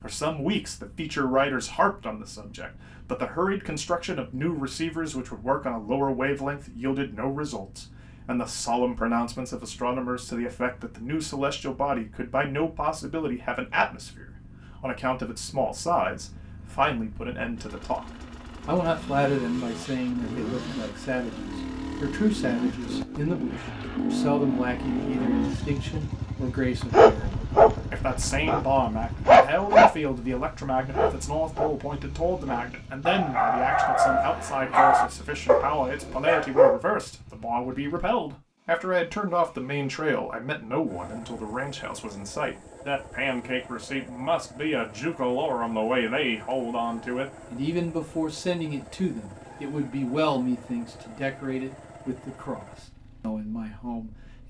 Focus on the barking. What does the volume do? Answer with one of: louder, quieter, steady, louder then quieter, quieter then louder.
quieter then louder.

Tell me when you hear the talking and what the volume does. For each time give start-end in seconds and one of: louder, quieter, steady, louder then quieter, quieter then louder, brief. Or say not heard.
0.0-54.1 steady.